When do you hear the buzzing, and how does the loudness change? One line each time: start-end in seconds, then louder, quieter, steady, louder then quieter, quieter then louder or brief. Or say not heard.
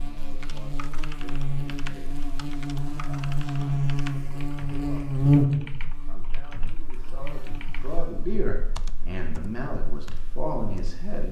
0.0-11.2 louder then quieter.